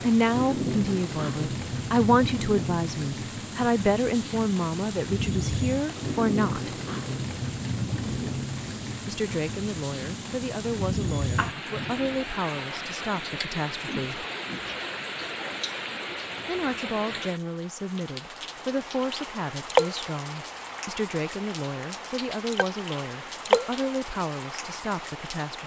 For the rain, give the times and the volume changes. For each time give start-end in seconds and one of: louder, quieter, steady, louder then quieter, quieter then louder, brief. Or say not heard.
0.0-25.6 steady.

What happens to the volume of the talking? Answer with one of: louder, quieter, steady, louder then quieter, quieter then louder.
quieter.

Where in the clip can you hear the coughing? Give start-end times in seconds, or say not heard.
not heard.